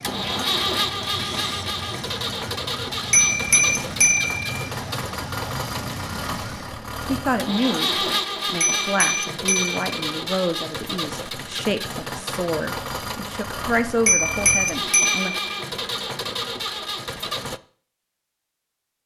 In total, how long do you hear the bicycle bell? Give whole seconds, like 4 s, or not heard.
4 s.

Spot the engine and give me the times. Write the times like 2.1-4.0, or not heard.
0.0-17.6.